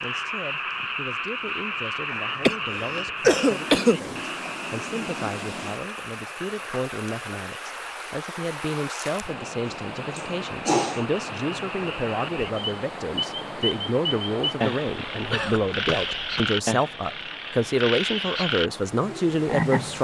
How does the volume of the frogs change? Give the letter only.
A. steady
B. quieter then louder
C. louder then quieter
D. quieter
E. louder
B.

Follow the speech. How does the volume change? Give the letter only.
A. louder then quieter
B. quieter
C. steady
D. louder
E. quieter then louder
D.